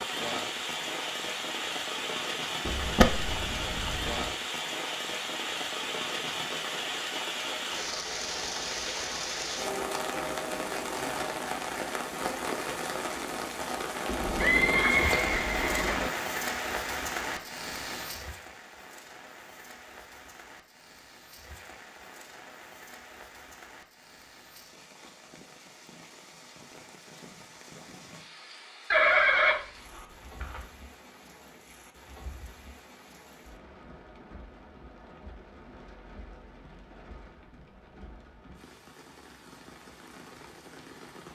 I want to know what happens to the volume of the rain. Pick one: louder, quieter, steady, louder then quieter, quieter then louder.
quieter.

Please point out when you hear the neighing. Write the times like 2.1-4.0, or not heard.
2.6-4.2, 14.1-16.1, 28.9-30.6.